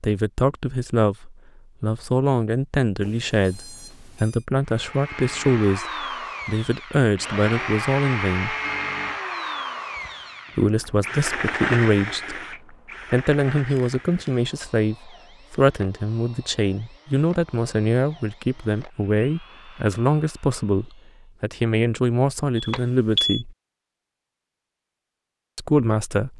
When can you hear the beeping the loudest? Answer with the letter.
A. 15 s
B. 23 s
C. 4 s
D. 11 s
B.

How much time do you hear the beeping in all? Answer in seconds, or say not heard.
3 s.